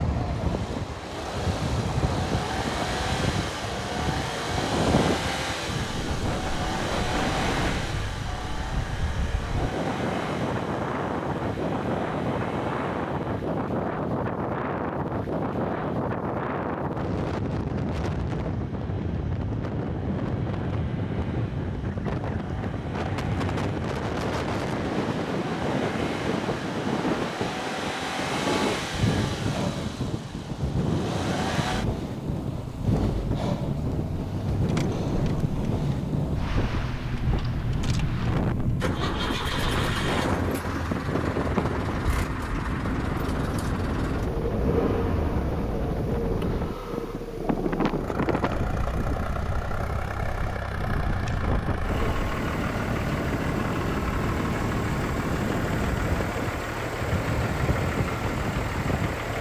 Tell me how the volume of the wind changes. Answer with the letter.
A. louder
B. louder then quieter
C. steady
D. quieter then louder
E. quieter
C.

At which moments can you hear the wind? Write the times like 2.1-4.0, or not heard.
0.0-59.3.